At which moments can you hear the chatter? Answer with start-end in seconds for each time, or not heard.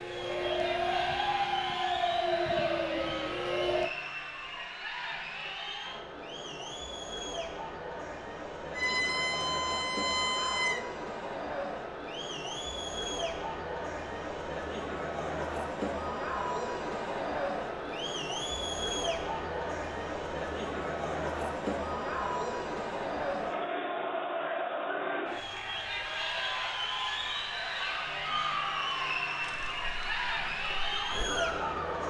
0.0-32.0.